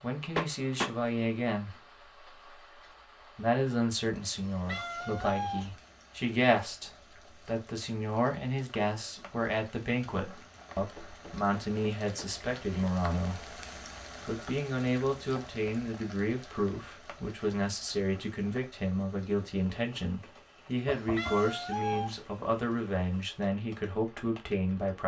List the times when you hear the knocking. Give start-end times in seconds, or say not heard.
0.3-0.9, 10.9-12.8, 20.9-22.1.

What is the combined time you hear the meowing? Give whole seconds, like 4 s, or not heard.
3 s.